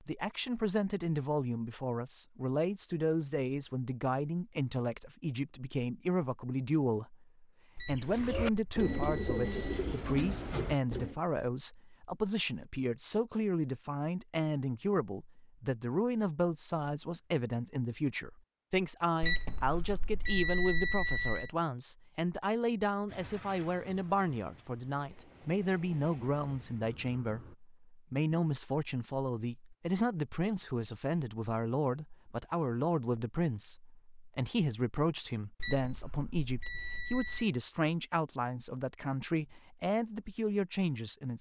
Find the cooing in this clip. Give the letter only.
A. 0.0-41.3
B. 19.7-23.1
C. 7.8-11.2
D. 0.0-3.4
C.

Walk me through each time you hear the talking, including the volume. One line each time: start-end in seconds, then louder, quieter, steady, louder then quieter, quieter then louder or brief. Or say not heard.
0.0-41.3 steady.